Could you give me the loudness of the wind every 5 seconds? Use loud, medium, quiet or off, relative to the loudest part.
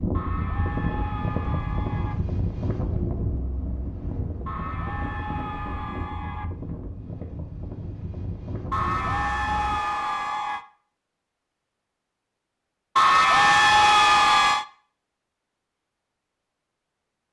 loud, medium, off, off.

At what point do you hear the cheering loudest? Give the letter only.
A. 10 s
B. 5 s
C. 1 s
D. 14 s
D.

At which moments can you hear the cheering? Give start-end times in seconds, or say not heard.
0.1-2.1, 4.5-6.5, 8.7-10.7, 12.9-14.7.